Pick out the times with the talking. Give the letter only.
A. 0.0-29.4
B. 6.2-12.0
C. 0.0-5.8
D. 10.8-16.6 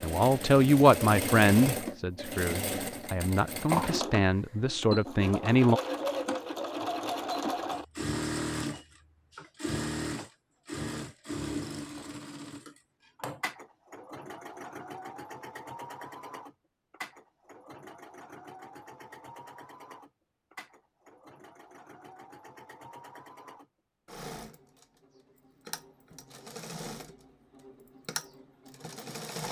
C.